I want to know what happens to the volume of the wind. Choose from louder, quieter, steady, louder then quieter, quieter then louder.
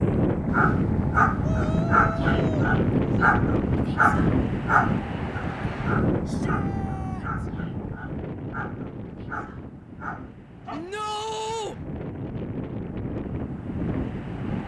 quieter then louder.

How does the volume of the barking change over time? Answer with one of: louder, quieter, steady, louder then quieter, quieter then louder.
quieter.